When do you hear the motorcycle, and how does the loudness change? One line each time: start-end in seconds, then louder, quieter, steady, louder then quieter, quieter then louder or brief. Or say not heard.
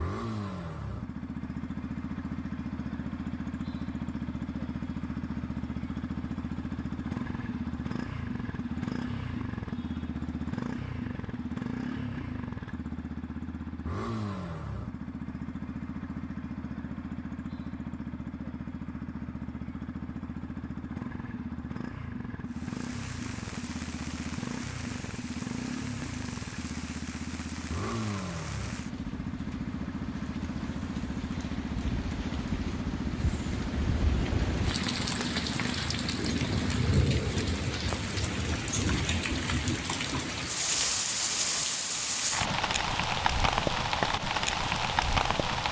0.0-37.0 steady.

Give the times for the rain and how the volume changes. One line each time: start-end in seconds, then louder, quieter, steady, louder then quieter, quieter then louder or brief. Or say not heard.
22.5-45.6 louder.